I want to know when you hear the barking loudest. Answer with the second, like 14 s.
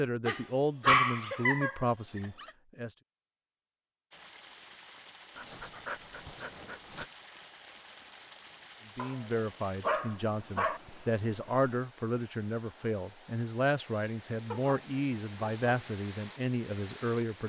1 s.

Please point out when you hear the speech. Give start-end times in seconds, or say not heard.
0.0-2.9, 8.9-17.4.